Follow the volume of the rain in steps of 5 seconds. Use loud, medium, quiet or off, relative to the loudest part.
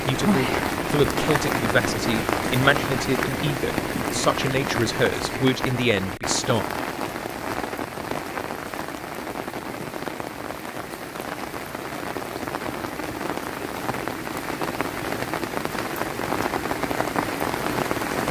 loud, medium, medium, loud.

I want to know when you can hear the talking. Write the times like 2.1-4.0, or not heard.
0.1-6.7.